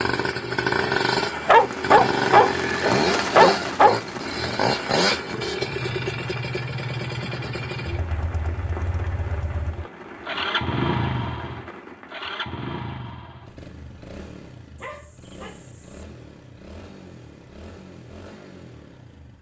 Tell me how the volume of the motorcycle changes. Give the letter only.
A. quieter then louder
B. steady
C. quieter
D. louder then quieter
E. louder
C.